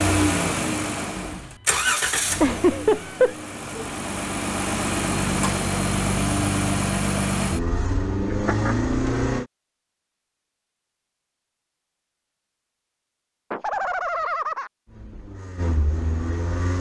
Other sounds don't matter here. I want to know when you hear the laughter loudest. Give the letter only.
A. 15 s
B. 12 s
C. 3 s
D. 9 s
C.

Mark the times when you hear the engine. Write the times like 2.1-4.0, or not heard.
0.0-9.4, 14.8-16.7.